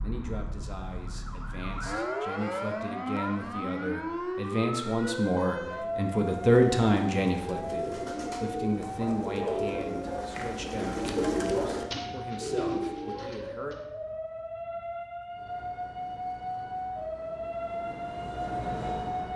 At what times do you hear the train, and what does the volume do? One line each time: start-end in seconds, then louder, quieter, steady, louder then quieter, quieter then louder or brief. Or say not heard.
15.2-19.3 louder.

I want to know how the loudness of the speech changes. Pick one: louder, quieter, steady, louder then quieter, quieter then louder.
louder then quieter.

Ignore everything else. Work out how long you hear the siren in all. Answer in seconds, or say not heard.
19 s.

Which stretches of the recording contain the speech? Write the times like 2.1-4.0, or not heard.
0.0-13.8.